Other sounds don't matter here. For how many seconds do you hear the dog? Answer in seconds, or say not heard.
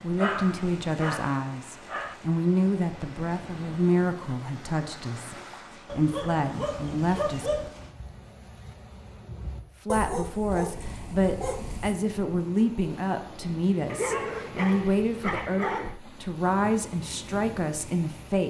8 s.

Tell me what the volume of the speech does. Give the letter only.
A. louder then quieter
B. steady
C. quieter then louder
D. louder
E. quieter
B.